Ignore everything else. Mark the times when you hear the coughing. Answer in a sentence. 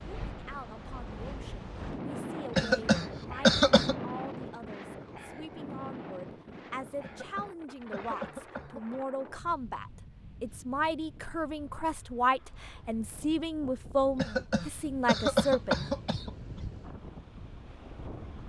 The coughing can be heard from 2.5 to 4.0 s, from 7.0 to 9.0 s and from 14.2 to 16.6 s.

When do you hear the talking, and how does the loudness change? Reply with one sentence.
The talking can be heard from 0.0 to 15.8 s, getting louder.